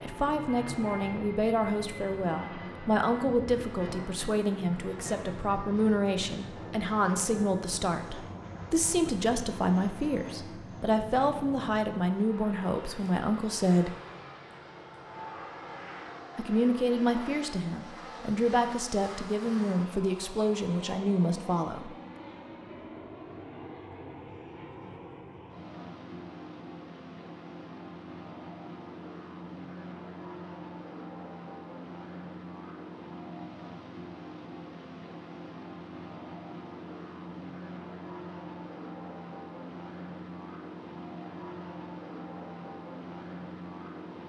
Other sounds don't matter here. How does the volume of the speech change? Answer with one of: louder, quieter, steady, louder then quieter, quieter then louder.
steady.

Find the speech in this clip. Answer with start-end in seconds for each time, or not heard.
0.0-13.9, 16.4-21.9.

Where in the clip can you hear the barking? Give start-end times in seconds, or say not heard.
not heard.